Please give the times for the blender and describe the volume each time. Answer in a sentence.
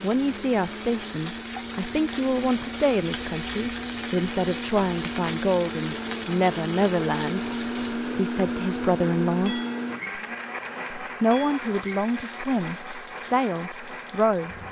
You can hear the blender from 0.0 to 14.6 s, getting louder then quieter.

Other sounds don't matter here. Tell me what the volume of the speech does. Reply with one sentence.
The volume of the speech stays about the same.